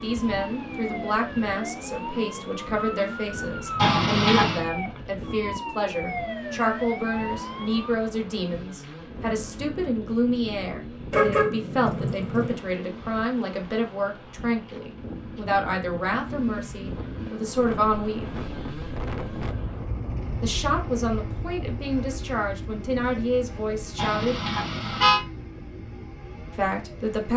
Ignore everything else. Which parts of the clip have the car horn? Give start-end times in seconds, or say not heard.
3.8-4.7, 11.1-12.6, 23.9-25.2.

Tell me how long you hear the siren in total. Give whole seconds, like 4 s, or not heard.
8 s.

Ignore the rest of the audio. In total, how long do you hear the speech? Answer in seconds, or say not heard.
23 s.